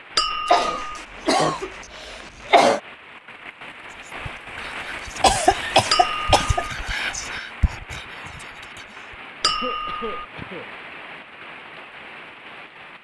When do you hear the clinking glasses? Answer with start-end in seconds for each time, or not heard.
0.1-0.9, 5.9-6.5, 9.4-10.2.